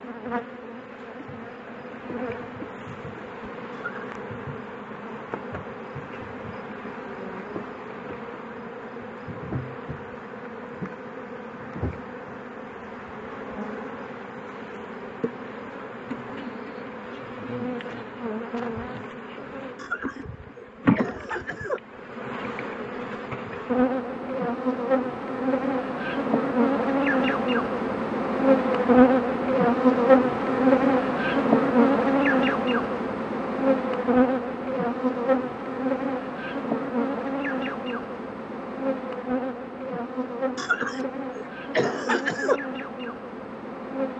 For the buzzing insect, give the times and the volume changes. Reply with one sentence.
You can hear the buzzing insect from 0.0 to 44.1 s, getting louder then quieter.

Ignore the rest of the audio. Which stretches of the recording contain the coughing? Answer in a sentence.
You can hear the coughing from 3.7 to 4.2 s, from 19.8 to 21.8 s and from 40.5 to 42.6 s.